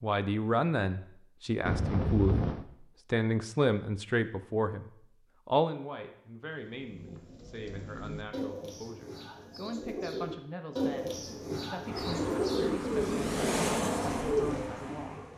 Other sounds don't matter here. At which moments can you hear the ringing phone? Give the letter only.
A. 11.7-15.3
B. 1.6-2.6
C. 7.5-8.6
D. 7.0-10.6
B.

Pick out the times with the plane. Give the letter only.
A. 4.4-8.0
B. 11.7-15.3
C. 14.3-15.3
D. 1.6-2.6
B.